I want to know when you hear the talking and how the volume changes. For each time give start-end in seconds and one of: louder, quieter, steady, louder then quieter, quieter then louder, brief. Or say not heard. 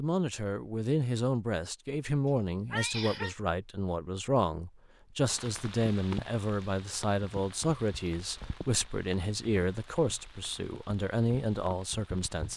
0.0-12.5 steady.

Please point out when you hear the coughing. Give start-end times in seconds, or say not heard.
2.7-3.4.